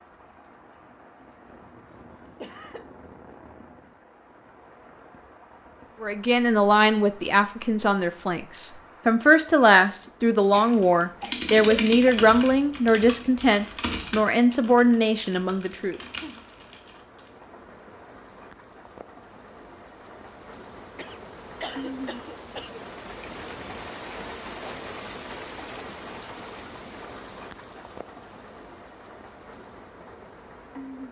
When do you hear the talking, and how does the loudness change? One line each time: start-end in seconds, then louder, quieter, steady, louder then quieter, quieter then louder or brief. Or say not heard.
6.0-16.0 steady.